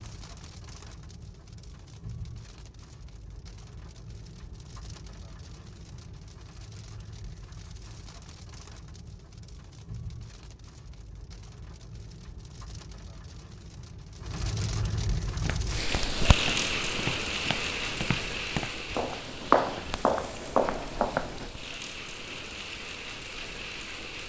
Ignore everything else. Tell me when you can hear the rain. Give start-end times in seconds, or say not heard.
0.0-24.2.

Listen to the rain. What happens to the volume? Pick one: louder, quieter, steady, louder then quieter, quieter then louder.
louder then quieter.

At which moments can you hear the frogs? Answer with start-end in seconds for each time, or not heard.
not heard.